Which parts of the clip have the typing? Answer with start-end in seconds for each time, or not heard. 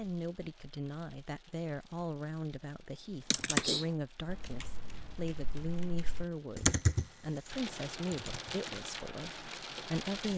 3.3-8.7.